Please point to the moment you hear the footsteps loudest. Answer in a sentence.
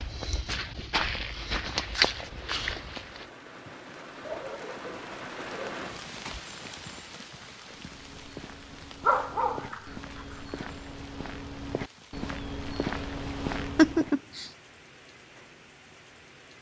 The loudest moment of the footsteps is at 2 seconds.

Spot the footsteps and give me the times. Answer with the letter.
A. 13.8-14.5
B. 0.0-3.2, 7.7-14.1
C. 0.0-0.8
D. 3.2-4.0
B.